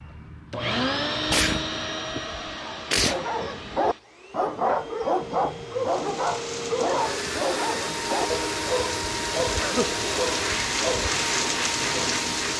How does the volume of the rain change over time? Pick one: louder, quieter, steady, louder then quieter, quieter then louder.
louder.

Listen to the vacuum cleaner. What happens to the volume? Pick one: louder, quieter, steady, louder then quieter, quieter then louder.
quieter then louder.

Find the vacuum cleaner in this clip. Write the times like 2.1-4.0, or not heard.
0.0-12.5.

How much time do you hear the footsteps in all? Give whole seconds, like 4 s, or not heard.
not heard.